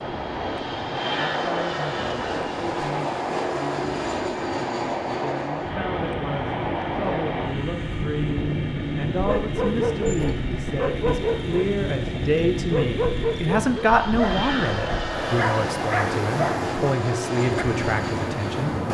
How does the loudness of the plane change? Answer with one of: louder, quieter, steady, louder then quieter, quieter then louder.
steady.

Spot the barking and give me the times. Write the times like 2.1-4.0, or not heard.
9.2-17.6.